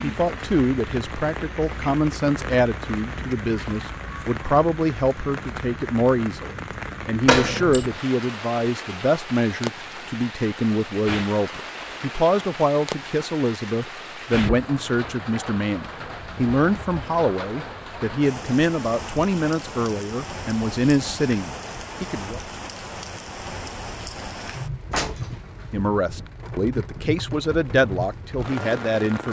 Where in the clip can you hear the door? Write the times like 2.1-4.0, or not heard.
7.2-7.9, 24.9-25.6.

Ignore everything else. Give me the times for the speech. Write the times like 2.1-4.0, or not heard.
0.0-22.4, 25.7-29.2.